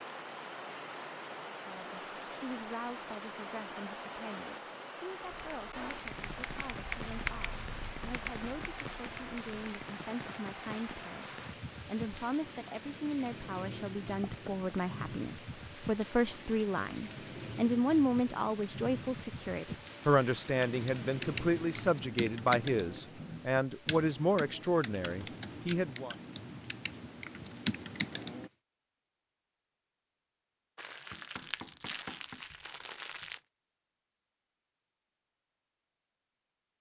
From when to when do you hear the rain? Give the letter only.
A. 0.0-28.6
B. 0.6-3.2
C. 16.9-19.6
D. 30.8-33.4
A.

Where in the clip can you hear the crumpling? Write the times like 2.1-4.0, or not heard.
30.8-33.4.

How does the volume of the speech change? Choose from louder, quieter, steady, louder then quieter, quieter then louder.
louder.